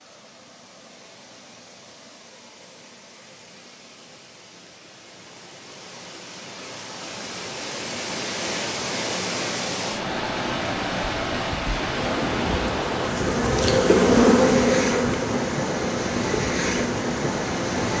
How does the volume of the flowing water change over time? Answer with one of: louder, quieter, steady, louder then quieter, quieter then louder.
louder.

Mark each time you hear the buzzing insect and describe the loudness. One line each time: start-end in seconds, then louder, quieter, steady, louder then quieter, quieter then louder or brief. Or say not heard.
11.8-17.9 louder then quieter.